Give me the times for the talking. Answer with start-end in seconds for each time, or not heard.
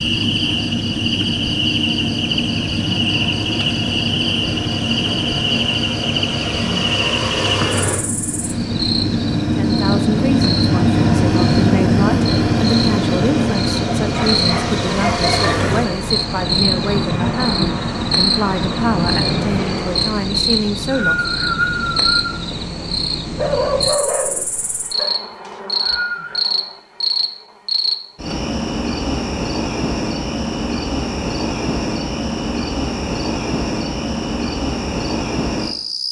9.5-21.2.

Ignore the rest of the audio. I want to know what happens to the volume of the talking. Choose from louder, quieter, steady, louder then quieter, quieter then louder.
steady.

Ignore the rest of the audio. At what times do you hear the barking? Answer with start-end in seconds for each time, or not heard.
14.1-15.8, 23.4-25.1.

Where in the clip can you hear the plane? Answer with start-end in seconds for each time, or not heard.
0.0-20.5.